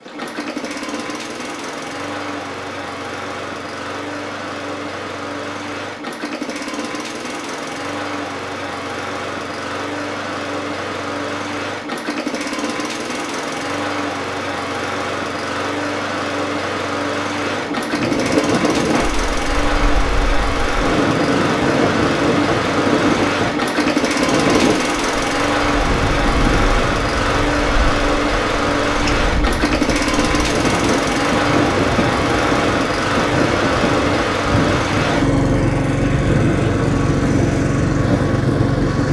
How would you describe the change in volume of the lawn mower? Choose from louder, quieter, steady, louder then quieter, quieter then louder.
louder.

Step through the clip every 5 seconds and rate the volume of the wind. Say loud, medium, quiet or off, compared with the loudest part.
off, off, off, loud, loud, medium, loud, loud.